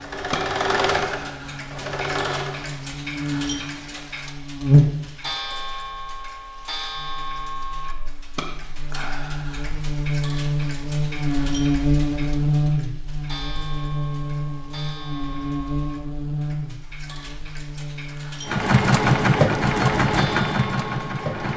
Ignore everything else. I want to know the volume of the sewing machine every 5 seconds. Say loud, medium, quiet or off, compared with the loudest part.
medium, off, off, loud, medium.